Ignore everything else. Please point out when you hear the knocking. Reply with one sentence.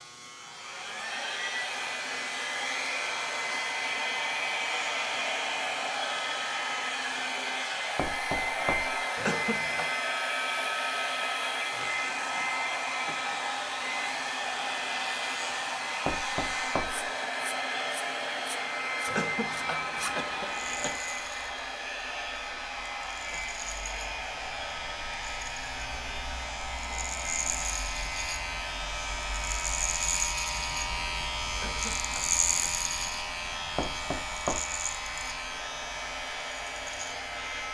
The knocking can be heard from 8.0 to 9.0 s, from 16.1 to 17.1 s and from 33.8 to 34.6 s.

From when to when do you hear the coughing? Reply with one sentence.
The coughing can be heard from 9.2 to 9.9 s, from 19.1 to 21.0 s and from 31.5 to 32.7 s.